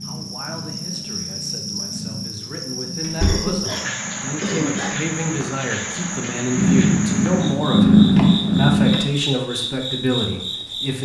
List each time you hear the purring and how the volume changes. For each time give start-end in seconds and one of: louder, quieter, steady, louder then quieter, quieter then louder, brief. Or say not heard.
0.0-8.9 louder.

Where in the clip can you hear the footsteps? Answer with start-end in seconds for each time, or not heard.
not heard.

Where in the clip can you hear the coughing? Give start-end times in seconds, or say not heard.
3.2-5.2.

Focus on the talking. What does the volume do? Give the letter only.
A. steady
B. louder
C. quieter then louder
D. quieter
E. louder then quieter
B.